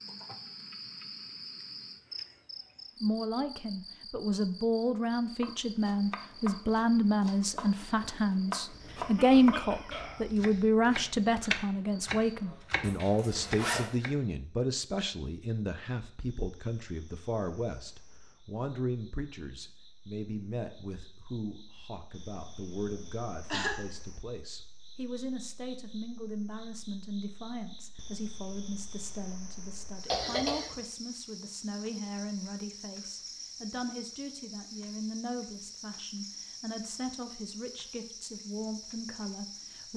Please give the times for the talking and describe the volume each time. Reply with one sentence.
The talking can be heard from 3.0 to 39.9 s, getting quieter.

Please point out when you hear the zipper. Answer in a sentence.
You can hear the zipper from 12.8 to 13.8 s.